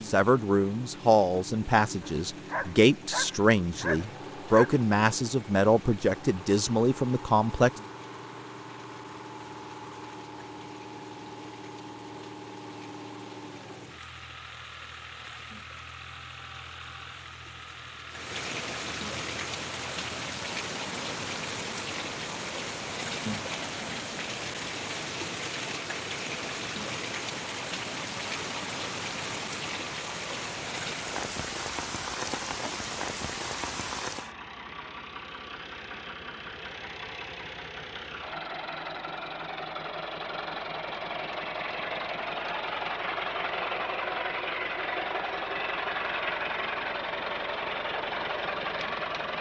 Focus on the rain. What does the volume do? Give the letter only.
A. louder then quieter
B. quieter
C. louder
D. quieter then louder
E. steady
C.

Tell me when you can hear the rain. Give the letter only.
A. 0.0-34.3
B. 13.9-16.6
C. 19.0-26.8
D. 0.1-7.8
A.